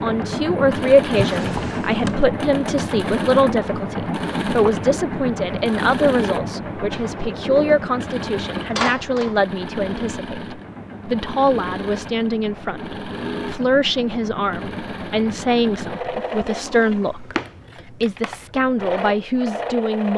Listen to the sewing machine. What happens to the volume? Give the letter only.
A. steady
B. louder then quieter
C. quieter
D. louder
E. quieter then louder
C.